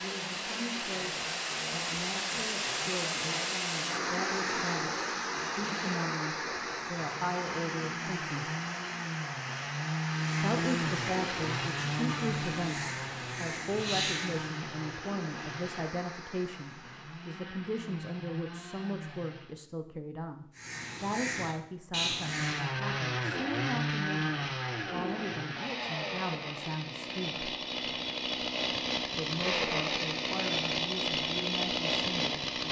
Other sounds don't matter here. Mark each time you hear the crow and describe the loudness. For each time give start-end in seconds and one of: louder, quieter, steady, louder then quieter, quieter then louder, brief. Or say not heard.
10.2-14.6 louder
20.6-22.6 brief.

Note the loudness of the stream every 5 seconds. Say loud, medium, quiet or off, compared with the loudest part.
loud, loud, medium, quiet, off, off, off.